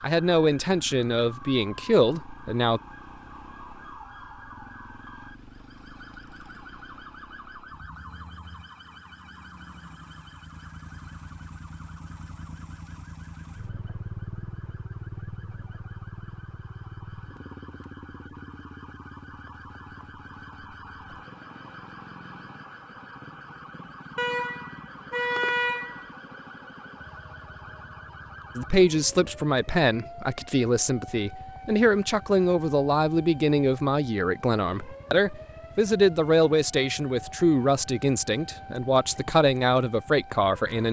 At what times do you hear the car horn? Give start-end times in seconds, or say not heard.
24.1-26.1.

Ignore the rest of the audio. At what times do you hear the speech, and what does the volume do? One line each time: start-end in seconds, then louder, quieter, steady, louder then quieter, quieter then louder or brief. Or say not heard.
0.0-2.8 brief
28.6-40.8 steady.